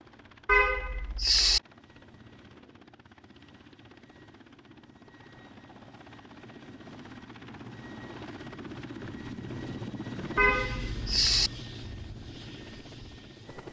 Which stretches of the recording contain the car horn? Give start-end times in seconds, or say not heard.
0.5-1.6, 10.3-11.5.